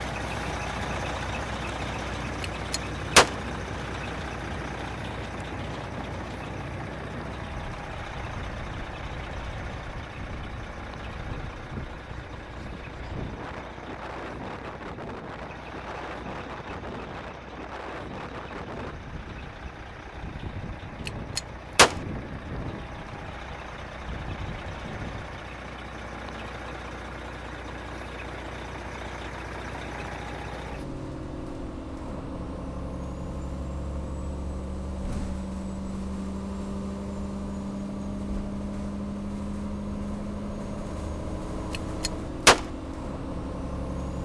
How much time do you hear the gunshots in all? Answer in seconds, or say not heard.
3 s.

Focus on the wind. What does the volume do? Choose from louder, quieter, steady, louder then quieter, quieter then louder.
steady.